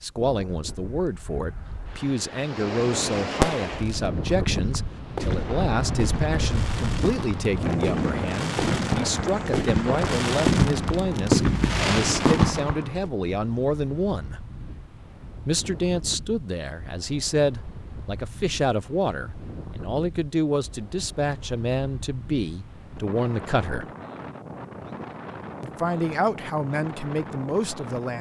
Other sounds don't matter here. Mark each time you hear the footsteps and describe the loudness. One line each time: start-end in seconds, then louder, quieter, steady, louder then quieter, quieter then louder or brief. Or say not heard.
not heard.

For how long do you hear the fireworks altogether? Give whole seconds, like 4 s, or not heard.
10 s.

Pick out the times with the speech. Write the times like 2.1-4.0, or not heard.
0.0-14.4, 15.4-23.9, 25.6-28.1.